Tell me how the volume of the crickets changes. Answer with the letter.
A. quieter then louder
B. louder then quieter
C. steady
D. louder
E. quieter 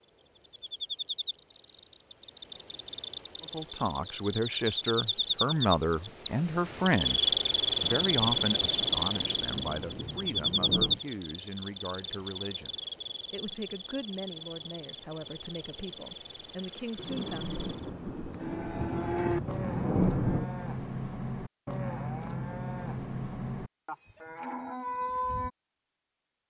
B.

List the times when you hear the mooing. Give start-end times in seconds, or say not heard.
18.4-25.5.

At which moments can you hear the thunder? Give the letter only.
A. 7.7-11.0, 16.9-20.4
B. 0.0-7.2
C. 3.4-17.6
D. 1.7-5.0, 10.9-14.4
A.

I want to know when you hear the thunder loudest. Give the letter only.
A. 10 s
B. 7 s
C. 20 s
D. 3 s
C.